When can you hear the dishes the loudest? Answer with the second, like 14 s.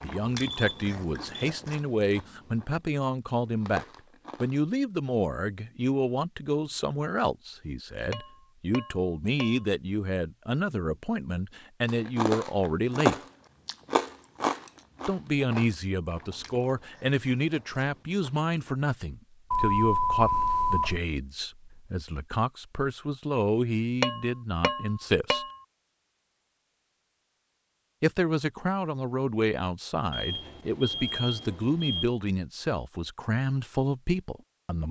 24 s.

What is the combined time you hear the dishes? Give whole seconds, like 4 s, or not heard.
3 s.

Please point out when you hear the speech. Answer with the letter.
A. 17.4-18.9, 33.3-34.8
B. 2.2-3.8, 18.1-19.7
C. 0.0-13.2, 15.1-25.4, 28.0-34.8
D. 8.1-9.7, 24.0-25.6
C.